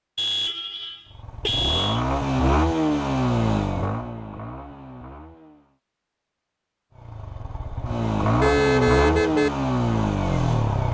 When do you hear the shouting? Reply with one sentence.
The shouting can't be heard in this clip.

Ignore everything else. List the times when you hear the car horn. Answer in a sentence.
The car horn can be heard from 0.1 to 2.0 s and from 8.4 to 9.5 s.